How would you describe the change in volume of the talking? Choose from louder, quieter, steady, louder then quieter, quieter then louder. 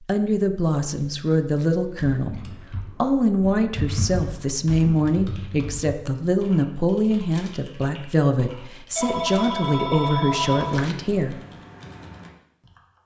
steady.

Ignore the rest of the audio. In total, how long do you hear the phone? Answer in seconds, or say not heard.
2 s.